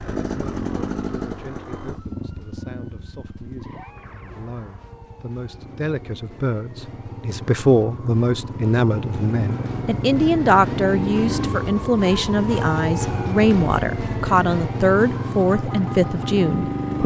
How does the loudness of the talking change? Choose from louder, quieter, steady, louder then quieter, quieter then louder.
louder.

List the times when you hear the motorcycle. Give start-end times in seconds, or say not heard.
0.0-17.0.